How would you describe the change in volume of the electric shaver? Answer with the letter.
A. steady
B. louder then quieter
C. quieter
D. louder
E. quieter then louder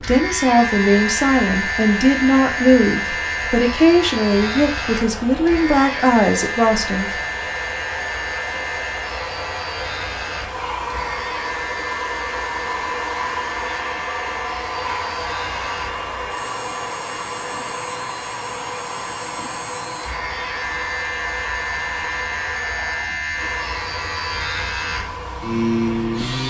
E.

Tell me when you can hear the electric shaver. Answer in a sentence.
The electric shaver can be heard from 0.0 to 26.4 s.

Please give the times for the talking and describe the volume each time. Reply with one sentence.
You can hear the talking from 0.0 to 7.2 s, at a steady volume.